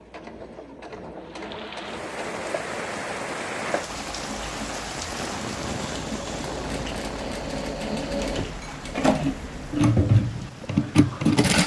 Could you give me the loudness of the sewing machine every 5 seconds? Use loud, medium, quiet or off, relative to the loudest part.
quiet, medium, loud.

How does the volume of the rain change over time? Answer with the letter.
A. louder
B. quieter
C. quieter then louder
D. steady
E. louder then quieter
B.